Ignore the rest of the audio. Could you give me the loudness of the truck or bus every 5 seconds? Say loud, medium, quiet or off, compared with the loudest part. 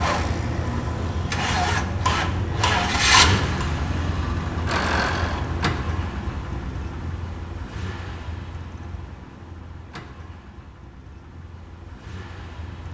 loud, medium, quiet.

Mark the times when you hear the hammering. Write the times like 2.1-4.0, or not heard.
2.0-3.6.